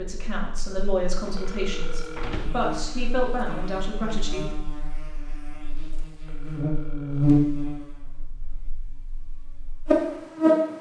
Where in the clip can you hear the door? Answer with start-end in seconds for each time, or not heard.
1.2-2.8.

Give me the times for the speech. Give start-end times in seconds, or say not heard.
0.0-4.5.